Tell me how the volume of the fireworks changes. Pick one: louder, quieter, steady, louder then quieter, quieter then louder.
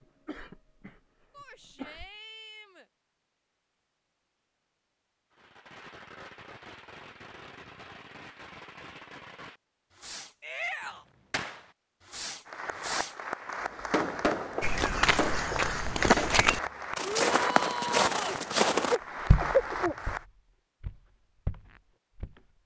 louder.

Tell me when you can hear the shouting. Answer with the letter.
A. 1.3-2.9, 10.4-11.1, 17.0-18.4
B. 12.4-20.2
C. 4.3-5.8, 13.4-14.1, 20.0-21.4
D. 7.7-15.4
A.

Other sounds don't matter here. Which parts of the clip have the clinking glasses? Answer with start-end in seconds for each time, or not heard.
not heard.